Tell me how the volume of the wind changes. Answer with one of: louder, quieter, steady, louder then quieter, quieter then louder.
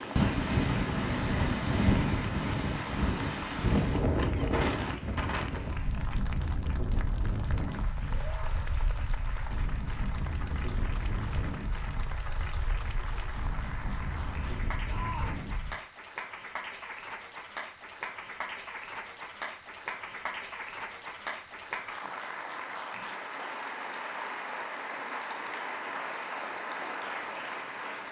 quieter.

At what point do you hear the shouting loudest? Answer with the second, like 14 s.
15 s.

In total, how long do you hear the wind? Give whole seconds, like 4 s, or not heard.
16 s.